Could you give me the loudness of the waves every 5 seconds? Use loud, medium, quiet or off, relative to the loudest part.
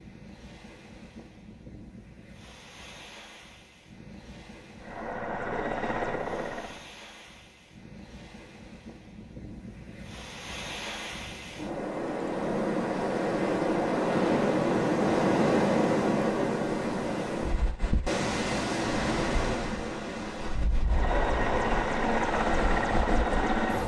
quiet, quiet, loud, loud, medium.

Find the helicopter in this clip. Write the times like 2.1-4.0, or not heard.
4.8-6.8, 20.9-23.8.